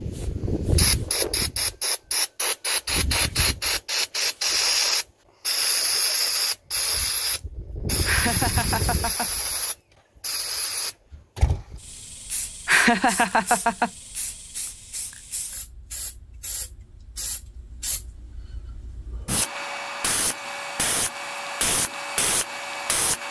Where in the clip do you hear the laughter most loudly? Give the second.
13 s.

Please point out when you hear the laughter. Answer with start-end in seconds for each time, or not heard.
8.1-9.3, 12.7-13.9.